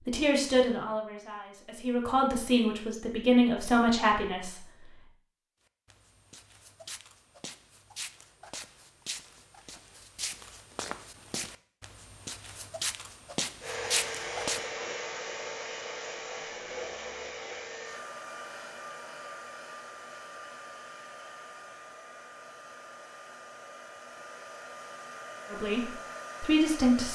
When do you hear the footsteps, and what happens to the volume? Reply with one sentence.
The footsteps can be heard from 5.8 to 14.6 s, getting louder.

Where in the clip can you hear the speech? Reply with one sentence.
The speech can be heard from 0.1 to 4.9 s and from 25.5 to 27.1 s.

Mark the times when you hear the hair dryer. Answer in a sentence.
You can hear the hair dryer from 13.6 to 27.1 s.